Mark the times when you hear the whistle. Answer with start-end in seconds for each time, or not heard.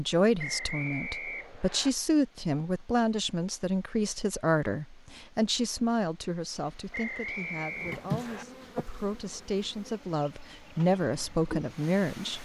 0.3-1.9, 6.9-8.4.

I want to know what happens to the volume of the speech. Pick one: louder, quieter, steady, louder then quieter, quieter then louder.
quieter then louder.